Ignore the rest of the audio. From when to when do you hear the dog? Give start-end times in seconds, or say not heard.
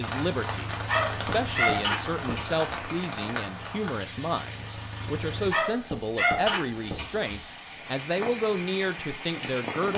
0.8-2.8, 5.4-7.4.